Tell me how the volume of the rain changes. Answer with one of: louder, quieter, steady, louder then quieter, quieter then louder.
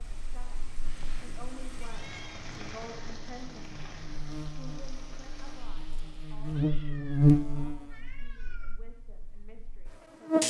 louder then quieter.